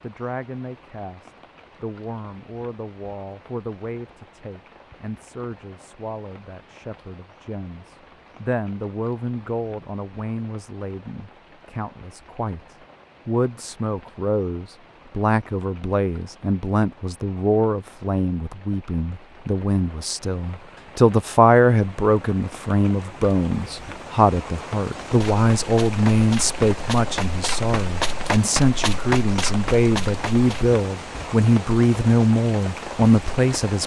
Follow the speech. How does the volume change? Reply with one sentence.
The volume of the speech goes up.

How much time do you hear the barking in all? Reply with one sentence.
You can't hear the barking here.